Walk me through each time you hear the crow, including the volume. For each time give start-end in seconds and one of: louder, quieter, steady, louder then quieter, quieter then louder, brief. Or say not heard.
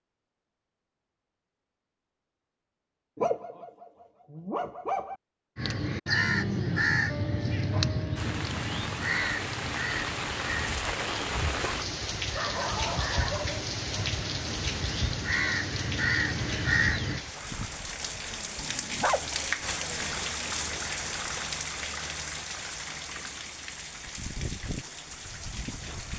5.5-17.2 quieter then louder.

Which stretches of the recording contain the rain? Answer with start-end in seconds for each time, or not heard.
8.2-26.1.